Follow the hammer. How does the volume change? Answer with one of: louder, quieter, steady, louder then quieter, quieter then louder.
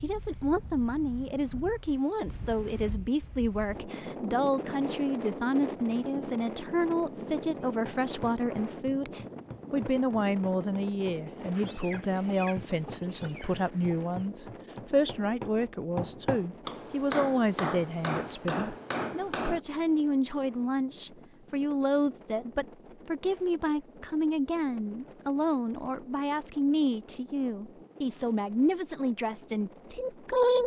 louder.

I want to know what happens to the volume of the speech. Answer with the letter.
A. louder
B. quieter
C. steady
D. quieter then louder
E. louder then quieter
C.